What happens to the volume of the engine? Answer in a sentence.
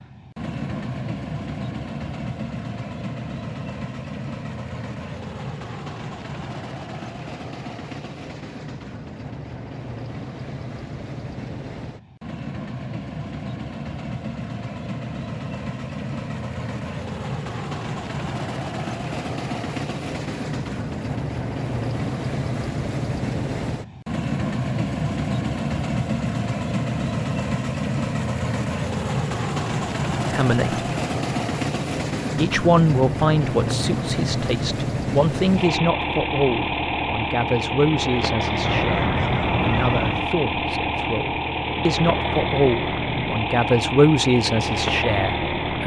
The volume of the engine goes up.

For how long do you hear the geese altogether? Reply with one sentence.
You can hear the geese for 2 seconds altogether.